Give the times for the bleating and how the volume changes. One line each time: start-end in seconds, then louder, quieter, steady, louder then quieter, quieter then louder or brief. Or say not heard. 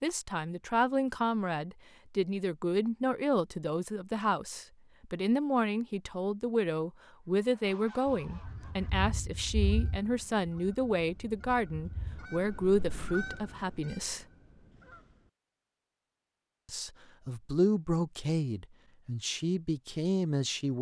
not heard.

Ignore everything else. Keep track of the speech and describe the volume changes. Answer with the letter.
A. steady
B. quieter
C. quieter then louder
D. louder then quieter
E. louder
A.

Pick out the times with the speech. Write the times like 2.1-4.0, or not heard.
0.0-14.2, 16.6-20.7.